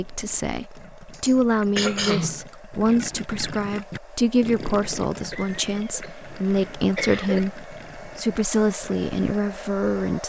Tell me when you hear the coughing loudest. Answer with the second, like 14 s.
2 s.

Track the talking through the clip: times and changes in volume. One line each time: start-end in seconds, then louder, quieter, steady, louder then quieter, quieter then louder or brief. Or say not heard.
0.0-10.2 steady.